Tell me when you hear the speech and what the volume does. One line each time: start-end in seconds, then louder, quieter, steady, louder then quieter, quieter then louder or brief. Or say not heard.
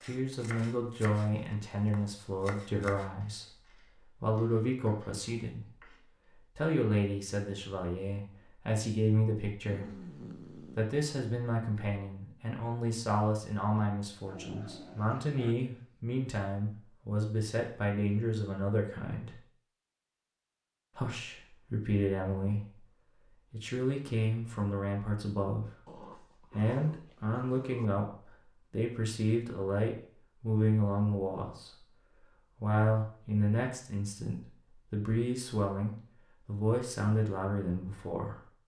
0.0-19.4 steady
20.9-38.5 steady.